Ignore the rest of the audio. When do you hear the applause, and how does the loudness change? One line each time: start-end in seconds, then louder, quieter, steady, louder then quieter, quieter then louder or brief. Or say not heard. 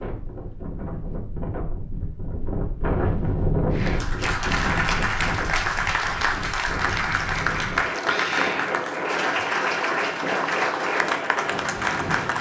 3.7-12.3 steady.